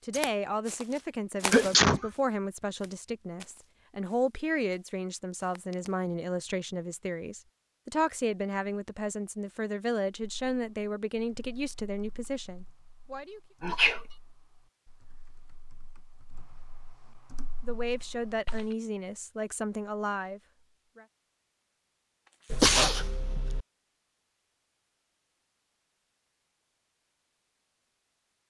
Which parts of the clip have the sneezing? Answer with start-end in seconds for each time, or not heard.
1.5-2.1, 13.6-14.0, 22.5-23.6.